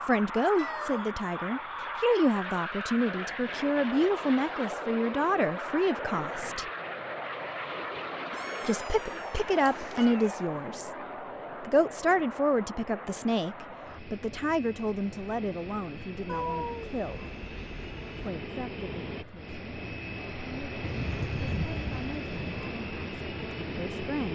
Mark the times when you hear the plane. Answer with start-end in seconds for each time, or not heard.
0.0-24.3.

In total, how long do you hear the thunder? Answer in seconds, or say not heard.
2 s.